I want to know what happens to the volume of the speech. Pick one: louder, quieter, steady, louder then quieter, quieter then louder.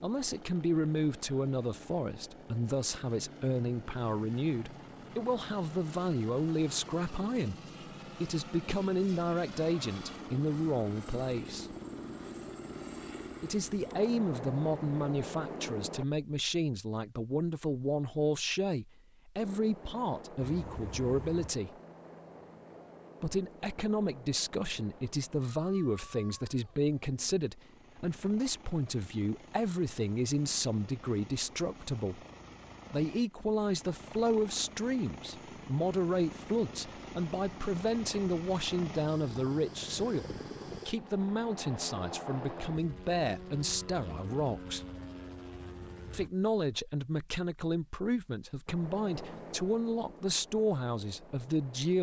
steady.